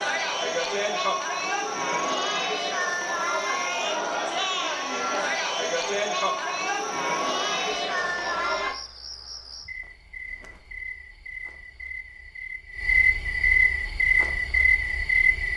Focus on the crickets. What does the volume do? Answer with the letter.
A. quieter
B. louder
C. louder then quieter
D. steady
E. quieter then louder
B.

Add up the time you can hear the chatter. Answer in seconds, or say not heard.
9 s.